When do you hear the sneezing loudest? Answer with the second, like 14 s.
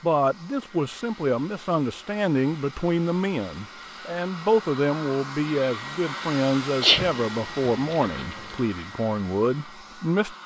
7 s.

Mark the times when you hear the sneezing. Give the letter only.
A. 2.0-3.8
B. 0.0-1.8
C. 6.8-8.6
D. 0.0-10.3
C.